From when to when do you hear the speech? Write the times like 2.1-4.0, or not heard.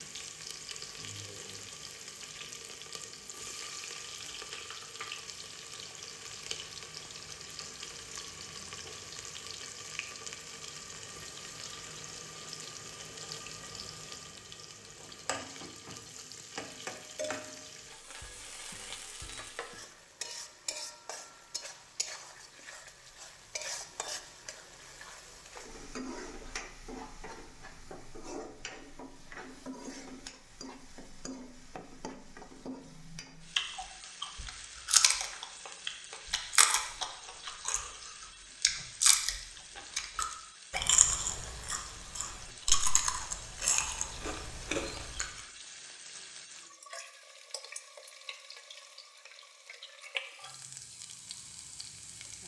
not heard.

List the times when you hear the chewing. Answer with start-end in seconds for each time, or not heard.
33.5-45.4.